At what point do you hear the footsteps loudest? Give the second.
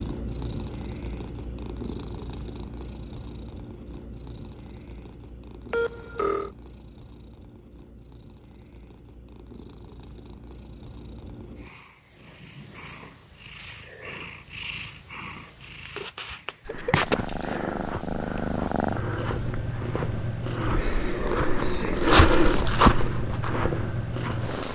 22 s.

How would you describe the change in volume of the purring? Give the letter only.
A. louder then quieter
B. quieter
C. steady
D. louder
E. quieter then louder
E.